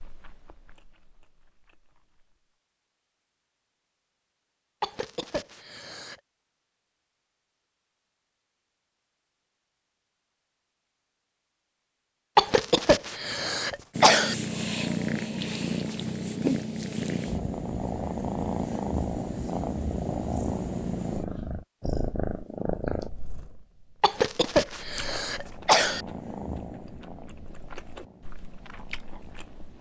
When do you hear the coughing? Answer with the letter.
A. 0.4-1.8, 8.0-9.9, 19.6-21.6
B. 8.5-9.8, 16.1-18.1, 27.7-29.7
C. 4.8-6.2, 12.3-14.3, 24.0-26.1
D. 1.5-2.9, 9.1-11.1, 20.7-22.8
C.